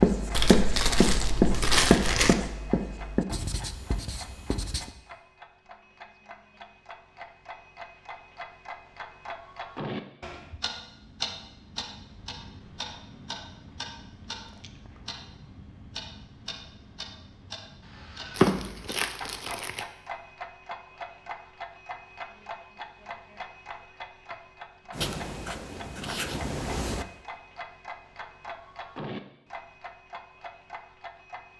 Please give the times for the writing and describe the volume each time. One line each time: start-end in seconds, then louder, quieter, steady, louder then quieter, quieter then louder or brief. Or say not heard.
0.0-5.0 quieter
24.9-27.1 brief.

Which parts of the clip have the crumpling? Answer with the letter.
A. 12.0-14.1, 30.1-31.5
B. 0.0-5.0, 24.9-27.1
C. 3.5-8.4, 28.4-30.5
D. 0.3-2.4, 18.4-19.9
D.